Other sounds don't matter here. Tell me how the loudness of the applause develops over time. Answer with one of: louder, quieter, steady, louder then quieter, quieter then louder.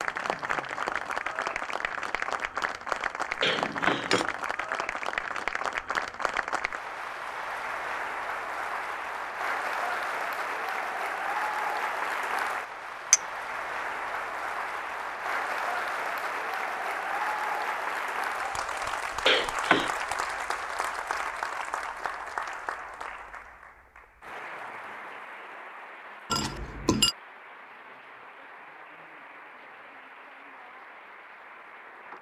quieter.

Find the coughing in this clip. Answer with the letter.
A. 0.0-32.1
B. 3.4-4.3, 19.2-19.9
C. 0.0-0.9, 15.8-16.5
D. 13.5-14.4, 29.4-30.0
B.